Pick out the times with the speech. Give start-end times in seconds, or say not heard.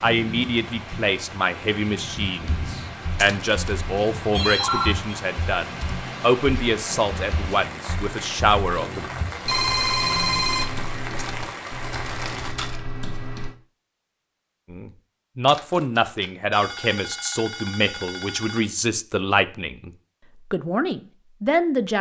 0.0-9.1, 14.7-19.9, 20.5-21.9.